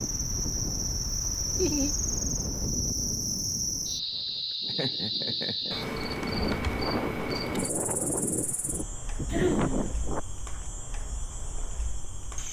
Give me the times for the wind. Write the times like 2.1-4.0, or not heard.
0.0-10.2.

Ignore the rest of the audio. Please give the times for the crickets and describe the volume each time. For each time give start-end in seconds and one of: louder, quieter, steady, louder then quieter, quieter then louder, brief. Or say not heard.
0.0-12.4 quieter.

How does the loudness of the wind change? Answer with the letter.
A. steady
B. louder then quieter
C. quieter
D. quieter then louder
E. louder
D.